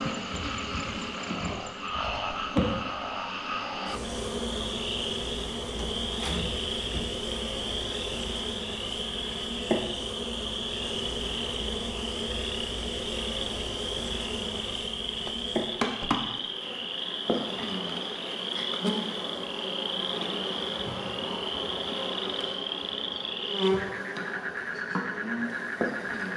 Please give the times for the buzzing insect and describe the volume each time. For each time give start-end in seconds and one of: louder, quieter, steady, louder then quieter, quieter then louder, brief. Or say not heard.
0.0-26.3 steady.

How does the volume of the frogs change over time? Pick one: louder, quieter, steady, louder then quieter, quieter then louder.
steady.